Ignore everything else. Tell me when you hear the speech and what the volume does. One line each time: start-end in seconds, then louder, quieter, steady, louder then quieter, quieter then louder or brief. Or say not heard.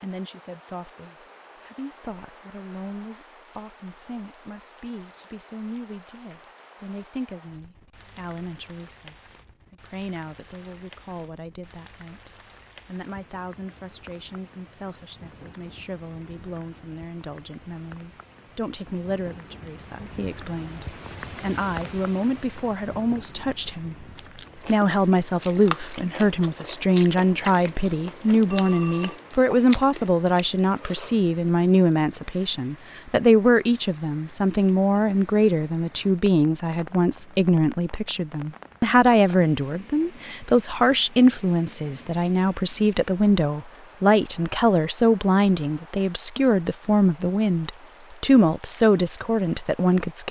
0.0-24.1 louder
24.6-50.2 steady.